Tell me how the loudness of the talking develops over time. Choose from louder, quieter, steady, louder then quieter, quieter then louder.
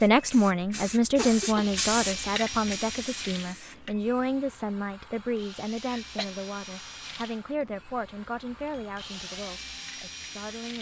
quieter.